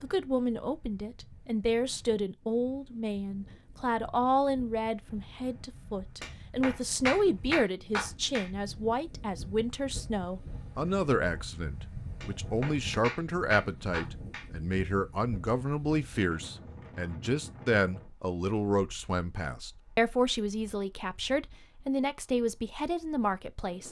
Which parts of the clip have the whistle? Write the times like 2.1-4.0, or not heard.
not heard.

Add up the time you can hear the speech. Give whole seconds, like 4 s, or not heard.
24 s.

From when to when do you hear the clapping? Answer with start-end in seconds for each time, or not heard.
6.2-8.5, 12.2-14.4.